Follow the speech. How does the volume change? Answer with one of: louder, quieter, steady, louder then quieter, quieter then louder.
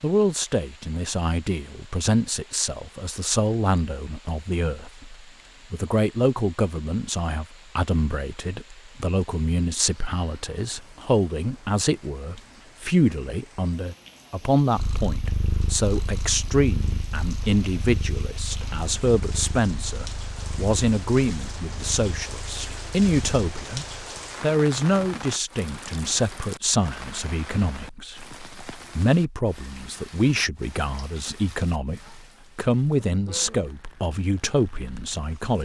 steady.